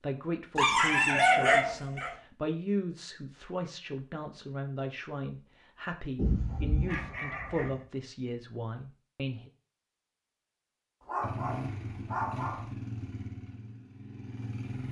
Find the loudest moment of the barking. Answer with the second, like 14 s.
1 s.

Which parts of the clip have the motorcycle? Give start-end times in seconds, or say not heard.
11.2-14.8.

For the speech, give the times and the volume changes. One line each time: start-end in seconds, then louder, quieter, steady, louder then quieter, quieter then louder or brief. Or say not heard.
0.0-9.5 steady.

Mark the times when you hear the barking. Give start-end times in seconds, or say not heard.
0.6-2.1, 6.2-7.8, 11.1-12.7.